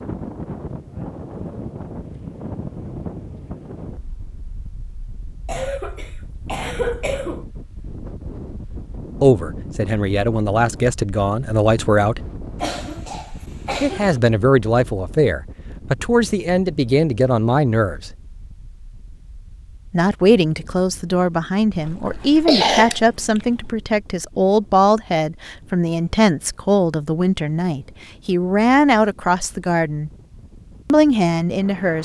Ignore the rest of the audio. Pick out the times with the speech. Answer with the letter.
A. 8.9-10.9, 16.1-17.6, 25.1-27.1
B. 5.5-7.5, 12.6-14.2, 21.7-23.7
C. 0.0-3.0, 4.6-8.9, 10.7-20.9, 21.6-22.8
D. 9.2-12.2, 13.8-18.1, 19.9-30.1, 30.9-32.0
D.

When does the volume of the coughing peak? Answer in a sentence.
The loudest moment of the coughing is at 23 seconds.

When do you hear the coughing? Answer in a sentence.
You can hear the coughing from 5.5 to 7.5 s, from 12.6 to 14.2 s and from 21.7 to 23.7 s.